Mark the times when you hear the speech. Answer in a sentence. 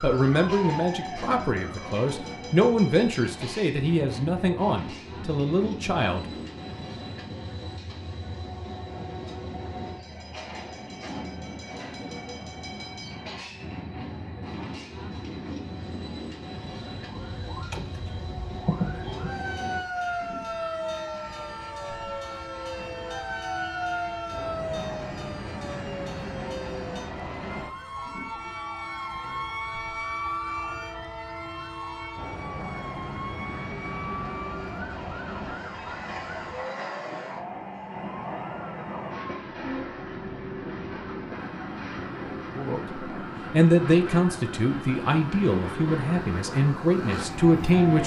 The speech can be heard from 0.0 to 6.2 s and from 42.5 to 48.0 s.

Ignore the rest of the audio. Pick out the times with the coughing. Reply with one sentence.
You can't hear the coughing here.